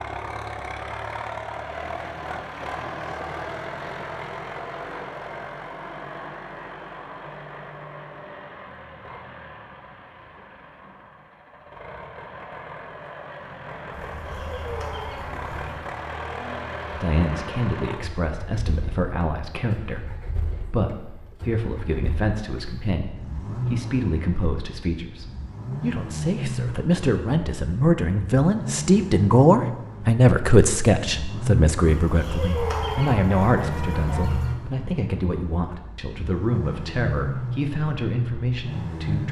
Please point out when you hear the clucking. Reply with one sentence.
The clucking can be heard from 13.9 to 15.9 s and from 31.8 to 34.5 s.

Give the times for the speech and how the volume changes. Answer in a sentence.
You can hear the speech from 16.9 to 39.2 s, getting louder then quieter.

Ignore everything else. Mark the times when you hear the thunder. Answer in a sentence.
You can't hear the thunder here.